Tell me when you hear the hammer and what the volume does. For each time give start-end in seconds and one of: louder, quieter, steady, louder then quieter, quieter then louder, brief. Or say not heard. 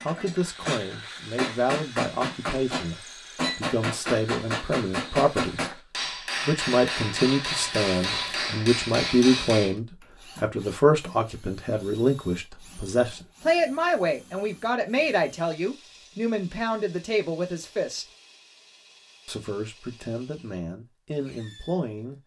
0.0-9.8 steady.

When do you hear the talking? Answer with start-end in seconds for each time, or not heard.
0.0-18.1, 19.2-22.2.